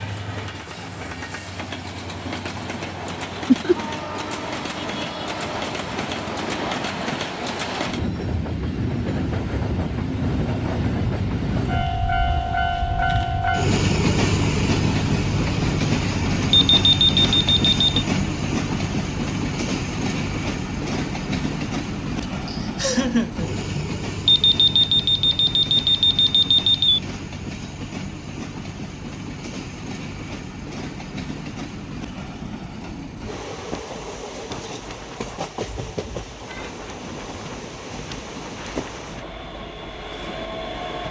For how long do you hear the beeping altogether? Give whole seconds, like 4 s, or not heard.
4 s.